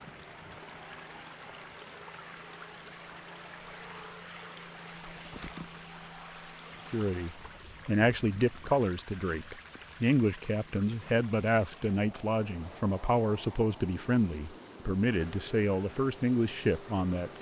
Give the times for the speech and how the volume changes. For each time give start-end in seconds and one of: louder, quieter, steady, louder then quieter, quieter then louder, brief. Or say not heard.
6.9-17.3 steady.